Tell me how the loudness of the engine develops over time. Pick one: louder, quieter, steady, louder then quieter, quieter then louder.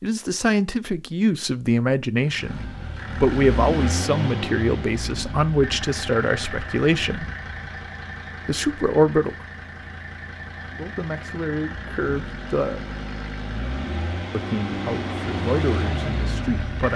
quieter then louder.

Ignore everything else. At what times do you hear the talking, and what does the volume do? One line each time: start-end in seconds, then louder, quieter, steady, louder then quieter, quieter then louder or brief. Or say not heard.
0.0-7.3 steady
8.4-9.3 brief
10.7-12.9 brief
14.3-16.9 brief.